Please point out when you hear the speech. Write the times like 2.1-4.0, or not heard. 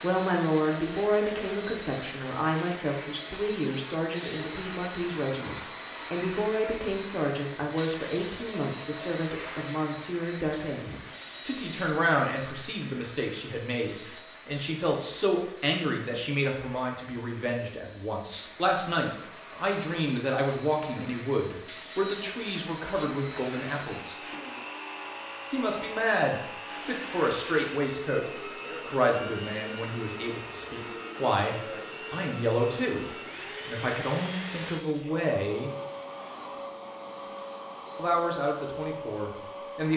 0.0-24.1, 25.5-35.8, 38.0-39.9.